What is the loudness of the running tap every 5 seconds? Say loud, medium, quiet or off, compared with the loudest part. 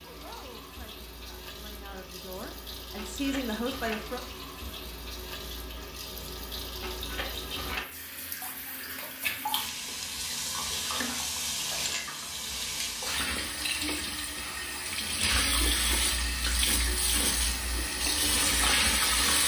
quiet, medium, medium, loud.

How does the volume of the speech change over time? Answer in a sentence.
The loudness of the speech goes up.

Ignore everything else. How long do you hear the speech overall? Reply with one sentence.
You can hear the speech for 4 seconds altogether.